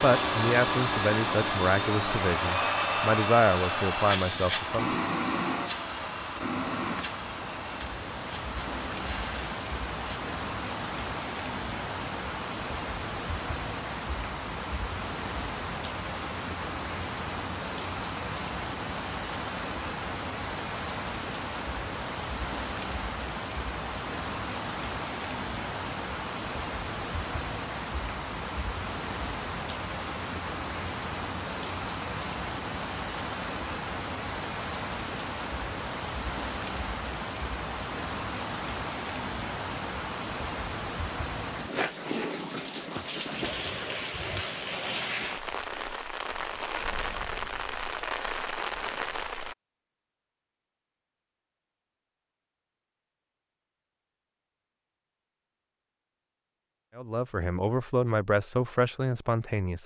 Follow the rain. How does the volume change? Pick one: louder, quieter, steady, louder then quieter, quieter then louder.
steady.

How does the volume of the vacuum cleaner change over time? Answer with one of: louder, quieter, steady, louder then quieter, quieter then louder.
quieter.